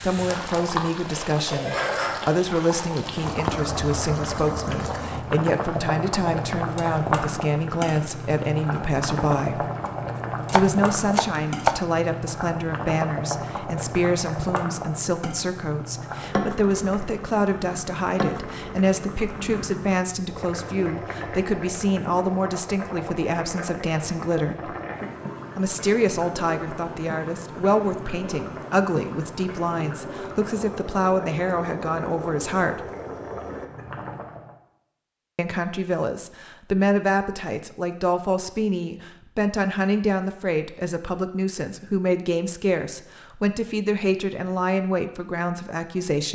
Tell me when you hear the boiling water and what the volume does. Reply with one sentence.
The boiling water can be heard from 0.0 to 34.5 s, getting quieter.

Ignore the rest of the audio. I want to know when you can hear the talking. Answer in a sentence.
You can hear the talking from 0.0 to 9.7 s, from 10.5 to 24.7 s, from 25.6 to 32.9 s and from 35.4 to 46.2 s.